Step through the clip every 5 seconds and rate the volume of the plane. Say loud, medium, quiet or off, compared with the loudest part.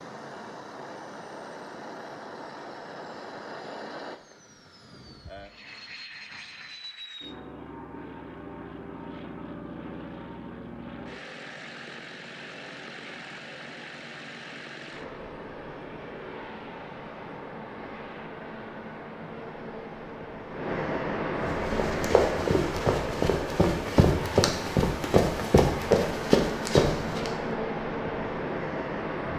medium, medium, medium, medium, loud, loud.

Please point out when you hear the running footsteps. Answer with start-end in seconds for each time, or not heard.
21.4-27.3.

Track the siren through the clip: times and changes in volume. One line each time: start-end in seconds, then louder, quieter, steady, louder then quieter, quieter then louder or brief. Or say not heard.
not heard.